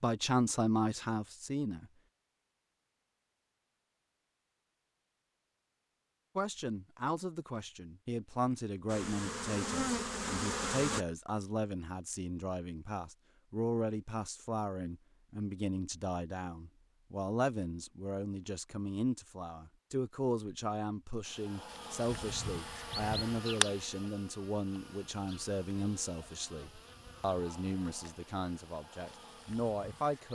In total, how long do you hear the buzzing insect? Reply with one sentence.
You can hear the buzzing insect for 11 seconds altogether.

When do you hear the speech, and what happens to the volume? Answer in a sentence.
You can hear the speech briefly from 0.0 to 1.9 s; and from 6.3 to 30.3 s, at a steady volume.